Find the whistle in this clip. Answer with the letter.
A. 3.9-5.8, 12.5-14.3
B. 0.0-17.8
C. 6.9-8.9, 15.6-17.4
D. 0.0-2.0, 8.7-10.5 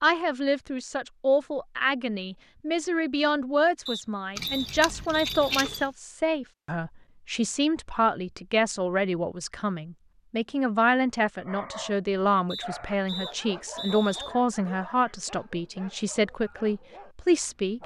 A.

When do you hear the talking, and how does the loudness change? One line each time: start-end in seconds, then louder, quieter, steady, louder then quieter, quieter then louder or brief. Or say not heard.
0.0-17.8 steady.